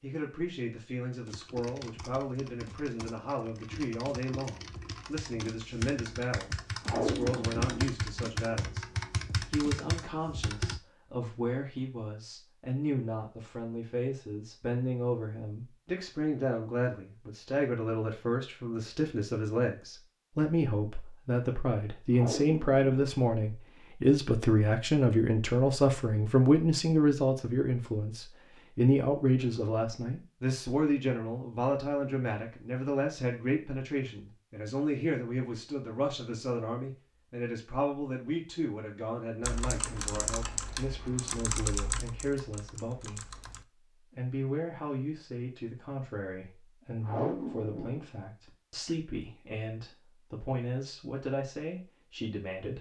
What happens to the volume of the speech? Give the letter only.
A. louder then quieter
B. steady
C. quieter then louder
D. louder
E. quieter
A.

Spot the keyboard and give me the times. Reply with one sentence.
You can hear the keyboard from 1.2 to 10.8 s and from 39.4 to 43.6 s.